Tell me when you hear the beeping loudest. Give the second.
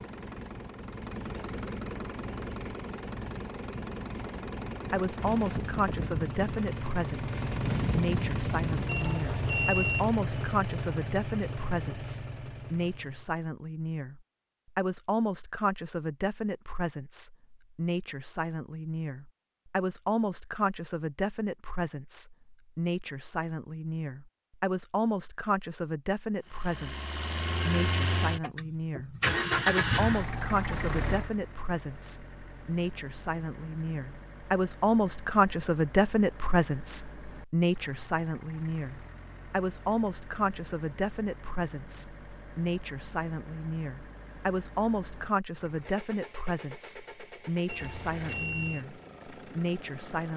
10 s.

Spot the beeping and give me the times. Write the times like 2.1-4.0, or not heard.
8.8-10.1, 47.6-48.9.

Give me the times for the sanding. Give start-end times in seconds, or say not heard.
not heard.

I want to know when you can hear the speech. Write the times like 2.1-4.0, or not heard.
4.9-50.3.